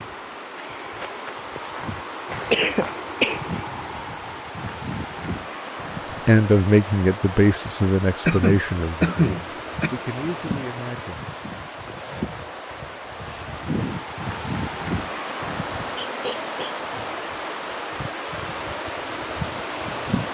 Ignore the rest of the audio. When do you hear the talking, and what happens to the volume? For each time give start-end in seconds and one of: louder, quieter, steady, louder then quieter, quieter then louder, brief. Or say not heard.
6.2-11.2 quieter.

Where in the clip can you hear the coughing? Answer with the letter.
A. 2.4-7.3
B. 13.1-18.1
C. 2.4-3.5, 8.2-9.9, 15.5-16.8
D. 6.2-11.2
C.